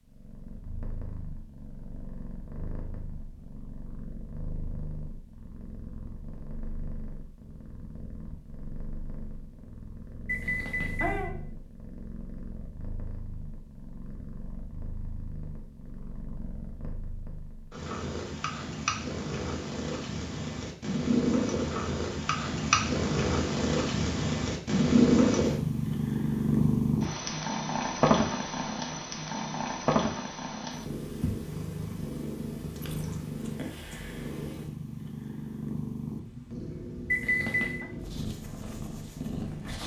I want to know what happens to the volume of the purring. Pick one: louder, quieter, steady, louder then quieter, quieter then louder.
louder then quieter.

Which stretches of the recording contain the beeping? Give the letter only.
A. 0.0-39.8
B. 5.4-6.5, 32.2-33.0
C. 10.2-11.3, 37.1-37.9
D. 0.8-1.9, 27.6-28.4
C.